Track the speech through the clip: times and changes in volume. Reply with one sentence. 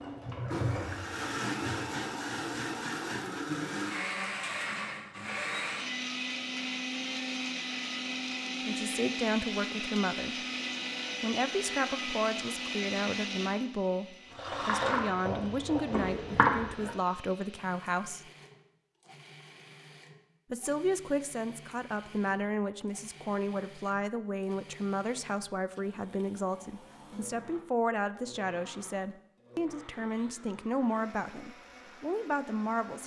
The speech can be heard briefly from 8.7 to 10.4 s; from 11.2 to 18.2 s, at a steady volume; and from 20.5 to 33.0 s, at a steady volume.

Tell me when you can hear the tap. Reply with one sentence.
You can hear the tap from 0.0 to 1.9 s and from 14.3 to 16.9 s.